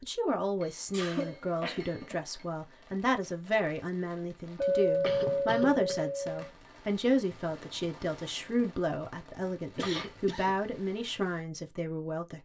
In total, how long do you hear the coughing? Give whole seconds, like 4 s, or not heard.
4 s.